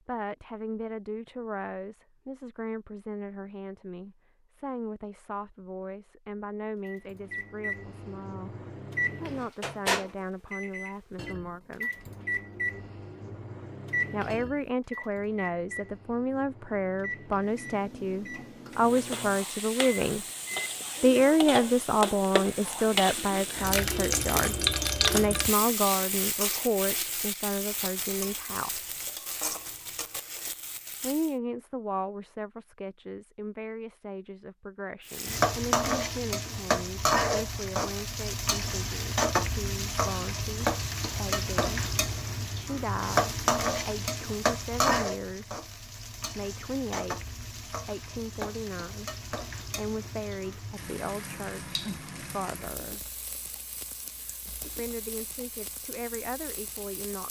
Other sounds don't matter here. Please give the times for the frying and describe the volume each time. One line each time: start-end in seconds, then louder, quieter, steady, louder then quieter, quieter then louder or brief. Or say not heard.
18.7-31.4 louder then quieter
35.0-57.2 quieter.